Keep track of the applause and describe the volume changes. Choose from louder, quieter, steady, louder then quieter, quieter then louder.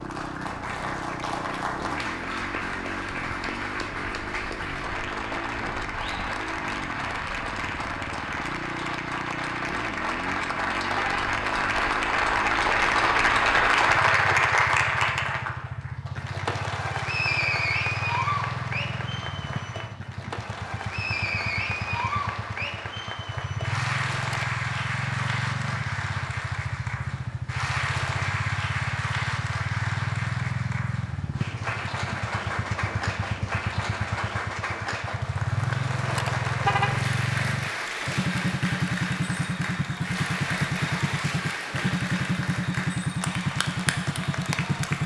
louder then quieter.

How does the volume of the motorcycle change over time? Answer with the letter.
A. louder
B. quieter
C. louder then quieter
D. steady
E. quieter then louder
A.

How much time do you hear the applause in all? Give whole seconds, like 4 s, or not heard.
45 s.